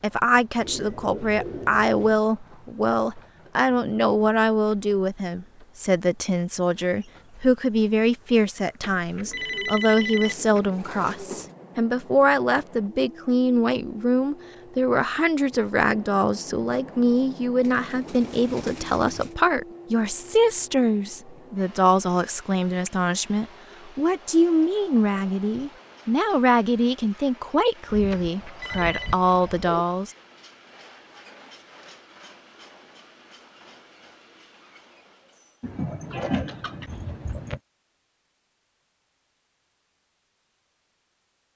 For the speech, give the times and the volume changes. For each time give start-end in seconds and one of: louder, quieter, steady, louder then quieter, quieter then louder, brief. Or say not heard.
0.0-30.1 steady.